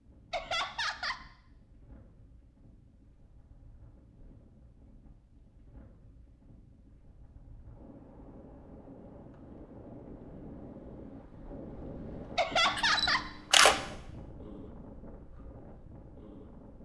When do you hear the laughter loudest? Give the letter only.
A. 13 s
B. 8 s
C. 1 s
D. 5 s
A.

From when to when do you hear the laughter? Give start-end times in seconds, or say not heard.
0.3-1.2, 12.3-13.3.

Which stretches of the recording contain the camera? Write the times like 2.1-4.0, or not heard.
12.7-13.8.